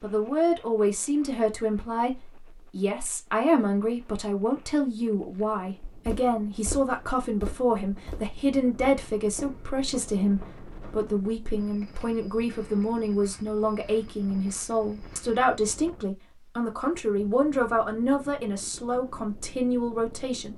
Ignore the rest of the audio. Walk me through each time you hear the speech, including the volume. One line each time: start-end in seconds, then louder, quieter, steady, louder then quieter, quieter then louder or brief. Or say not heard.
0.0-20.5 steady.